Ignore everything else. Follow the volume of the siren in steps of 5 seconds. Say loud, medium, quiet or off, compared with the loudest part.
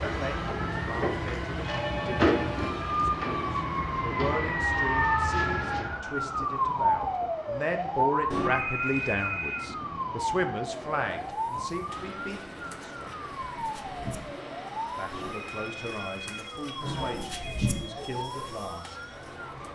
loud, loud, medium, quiet.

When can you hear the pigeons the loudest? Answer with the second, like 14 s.
18 s.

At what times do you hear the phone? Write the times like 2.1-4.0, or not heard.
1.5-2.6, 8.3-9.7, 15.1-17.8.